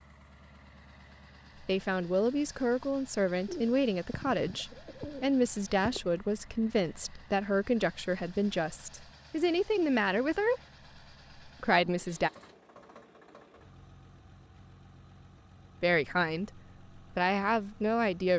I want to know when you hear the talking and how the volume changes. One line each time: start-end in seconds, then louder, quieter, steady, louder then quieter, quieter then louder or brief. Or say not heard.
1.6-10.6 steady
11.4-12.3 brief
15.8-18.3 brief.